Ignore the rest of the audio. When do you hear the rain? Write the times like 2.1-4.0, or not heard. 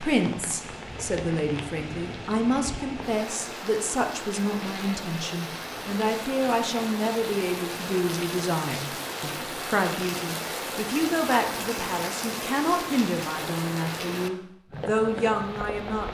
0.0-16.0.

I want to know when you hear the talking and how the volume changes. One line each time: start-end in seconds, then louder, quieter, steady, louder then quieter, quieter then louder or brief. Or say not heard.
0.0-16.0 steady.